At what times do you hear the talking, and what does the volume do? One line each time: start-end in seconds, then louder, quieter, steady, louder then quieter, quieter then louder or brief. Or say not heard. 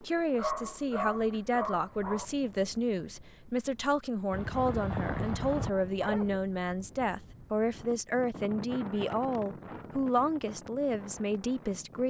0.0-12.0 steady.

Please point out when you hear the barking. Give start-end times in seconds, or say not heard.
0.3-2.2, 4.3-6.4, 8.6-9.9.